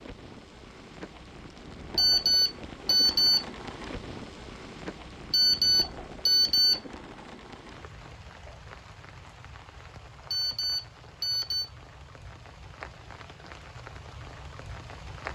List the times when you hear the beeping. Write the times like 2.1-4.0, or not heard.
1.9-3.4, 5.3-6.8, 10.3-11.7.